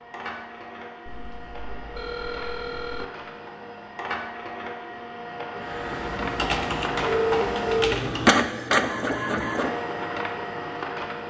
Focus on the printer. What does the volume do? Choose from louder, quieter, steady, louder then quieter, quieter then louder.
louder.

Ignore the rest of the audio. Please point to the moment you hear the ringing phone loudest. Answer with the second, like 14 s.
7 s.